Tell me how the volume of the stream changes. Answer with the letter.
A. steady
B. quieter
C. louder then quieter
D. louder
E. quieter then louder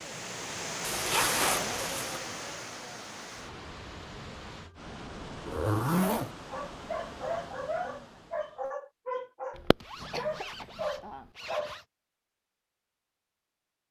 B.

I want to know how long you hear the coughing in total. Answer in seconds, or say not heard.
2 s.